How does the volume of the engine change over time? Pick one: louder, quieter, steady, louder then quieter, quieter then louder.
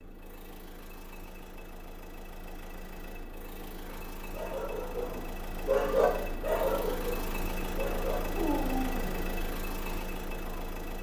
louder.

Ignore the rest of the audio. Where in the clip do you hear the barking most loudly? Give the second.
6 s.